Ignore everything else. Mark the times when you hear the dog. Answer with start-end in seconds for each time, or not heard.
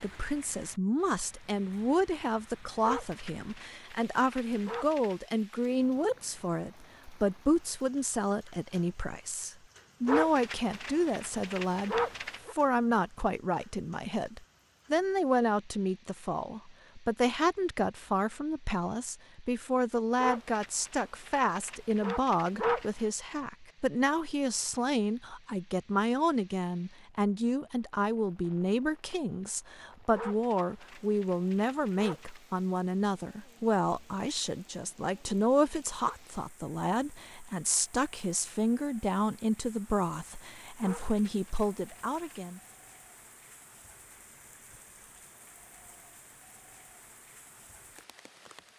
2.8-5.2, 10.1-12.6, 20.1-23.1, 30.1-32.4, 40.8-42.4.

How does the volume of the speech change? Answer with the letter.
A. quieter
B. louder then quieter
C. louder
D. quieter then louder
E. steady
E.